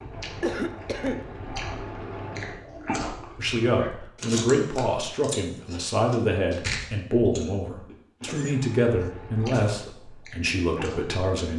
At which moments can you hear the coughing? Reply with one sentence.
You can hear the coughing from 0.4 to 1.2 s and from 8.2 to 9.9 s.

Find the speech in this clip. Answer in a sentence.
The speech can be heard from 3.4 to 11.5 s.